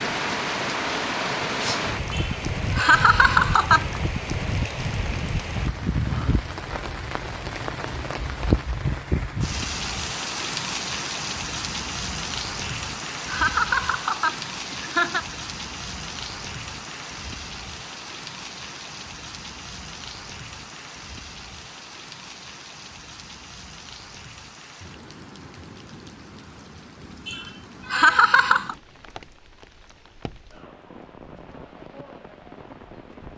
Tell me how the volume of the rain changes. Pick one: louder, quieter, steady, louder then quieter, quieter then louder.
quieter.